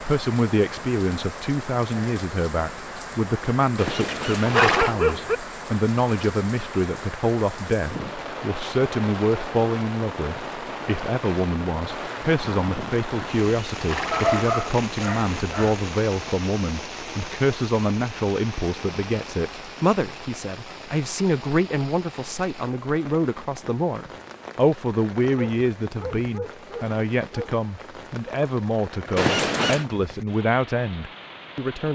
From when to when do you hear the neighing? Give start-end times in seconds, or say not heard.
3.8-5.0, 13.1-14.5, 29.1-29.9.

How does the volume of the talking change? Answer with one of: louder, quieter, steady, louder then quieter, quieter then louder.
steady.